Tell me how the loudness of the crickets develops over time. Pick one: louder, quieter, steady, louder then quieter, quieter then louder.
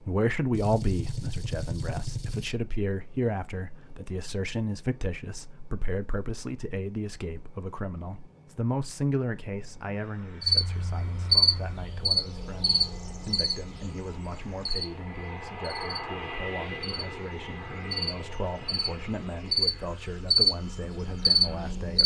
quieter then louder.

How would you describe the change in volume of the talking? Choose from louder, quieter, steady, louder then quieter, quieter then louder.
quieter.